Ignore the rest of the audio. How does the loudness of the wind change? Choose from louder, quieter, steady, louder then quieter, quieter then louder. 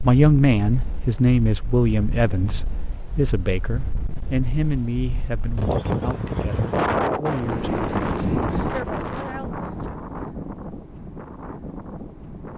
louder then quieter.